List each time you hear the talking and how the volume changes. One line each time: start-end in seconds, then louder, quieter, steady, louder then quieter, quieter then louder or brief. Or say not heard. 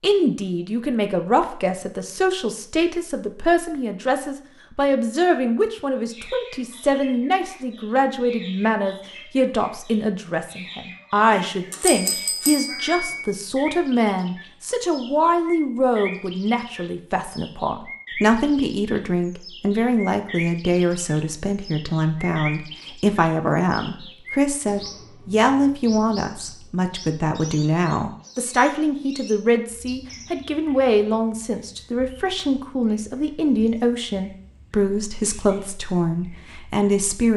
0.0-37.3 steady.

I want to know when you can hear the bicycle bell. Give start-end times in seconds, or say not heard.
11.3-13.2.